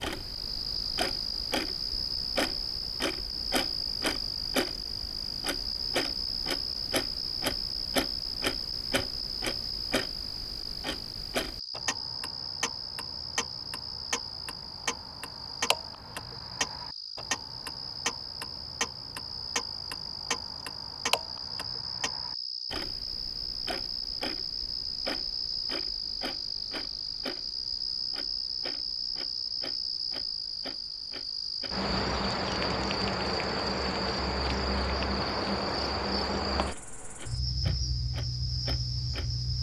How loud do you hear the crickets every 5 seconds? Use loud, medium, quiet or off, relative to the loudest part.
loud, loud, medium, medium, medium, loud, loud, loud.